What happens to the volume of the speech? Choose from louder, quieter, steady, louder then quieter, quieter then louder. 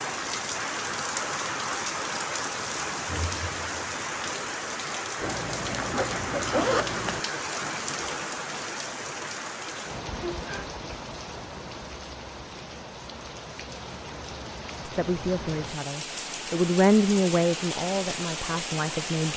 louder then quieter.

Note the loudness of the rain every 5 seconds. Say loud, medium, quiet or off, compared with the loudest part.
loud, loud, medium, loud.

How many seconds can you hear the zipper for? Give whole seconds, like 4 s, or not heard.
2 s.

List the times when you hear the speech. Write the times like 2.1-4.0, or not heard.
14.8-19.3.